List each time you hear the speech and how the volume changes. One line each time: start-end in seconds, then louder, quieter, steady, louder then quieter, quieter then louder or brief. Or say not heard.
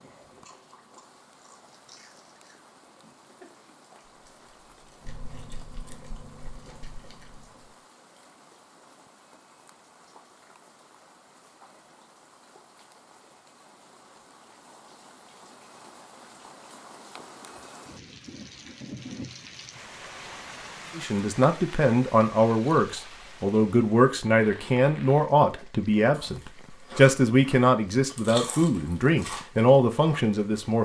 20.9-30.8 steady.